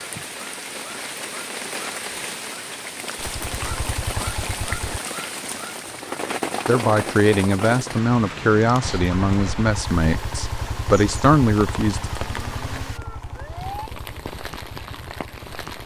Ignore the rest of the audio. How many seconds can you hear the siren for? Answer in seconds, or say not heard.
2 s.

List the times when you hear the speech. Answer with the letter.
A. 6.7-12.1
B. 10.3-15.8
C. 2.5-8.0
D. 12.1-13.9
A.